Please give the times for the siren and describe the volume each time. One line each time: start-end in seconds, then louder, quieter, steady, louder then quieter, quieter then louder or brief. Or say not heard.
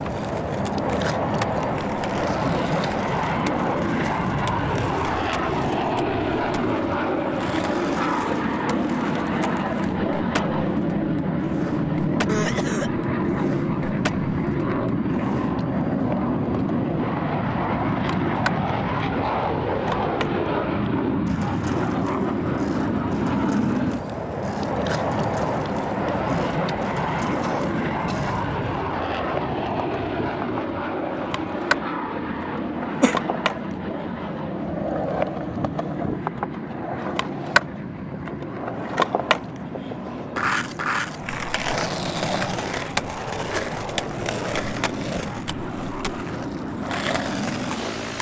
not heard.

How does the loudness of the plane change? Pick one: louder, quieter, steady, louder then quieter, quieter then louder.
quieter.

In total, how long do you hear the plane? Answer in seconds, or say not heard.
48 s.